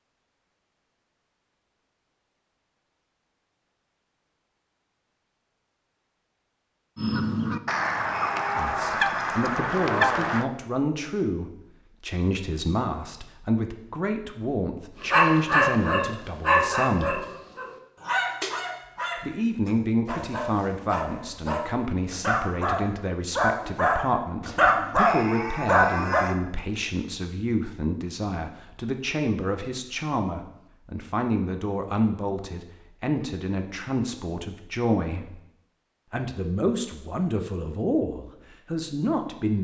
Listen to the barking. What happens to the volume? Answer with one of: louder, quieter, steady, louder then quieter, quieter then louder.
quieter then louder.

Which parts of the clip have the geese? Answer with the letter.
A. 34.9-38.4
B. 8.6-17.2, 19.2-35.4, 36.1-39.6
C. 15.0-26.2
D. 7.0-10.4
D.